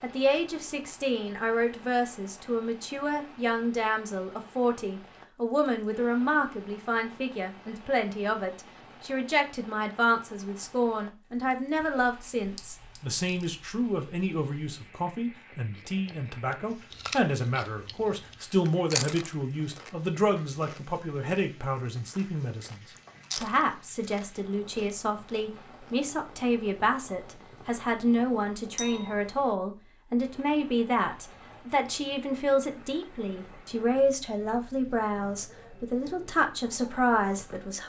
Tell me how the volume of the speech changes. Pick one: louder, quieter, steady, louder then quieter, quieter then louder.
steady.